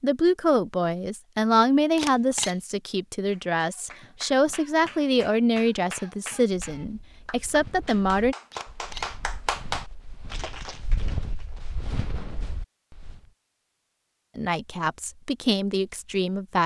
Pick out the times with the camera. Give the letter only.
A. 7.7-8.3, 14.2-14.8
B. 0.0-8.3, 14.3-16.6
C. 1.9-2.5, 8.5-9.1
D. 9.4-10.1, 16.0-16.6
C.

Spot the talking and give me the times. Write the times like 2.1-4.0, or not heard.
0.0-8.3, 14.3-16.6.